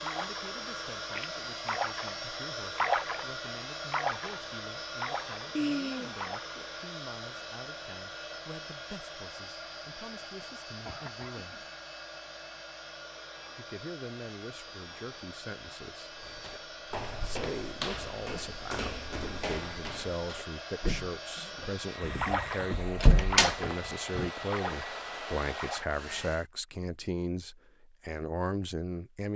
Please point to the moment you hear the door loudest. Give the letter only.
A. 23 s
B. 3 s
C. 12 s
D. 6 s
A.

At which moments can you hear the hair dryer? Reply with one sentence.
The hair dryer can be heard from 0.0 to 26.4 s.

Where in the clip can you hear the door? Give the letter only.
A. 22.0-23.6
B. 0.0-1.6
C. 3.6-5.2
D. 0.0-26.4
A.